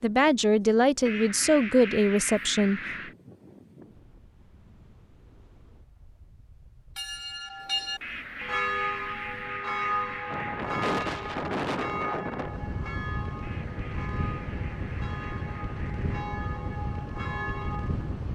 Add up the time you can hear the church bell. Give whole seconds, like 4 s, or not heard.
11 s.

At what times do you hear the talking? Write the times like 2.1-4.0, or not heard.
0.0-2.8.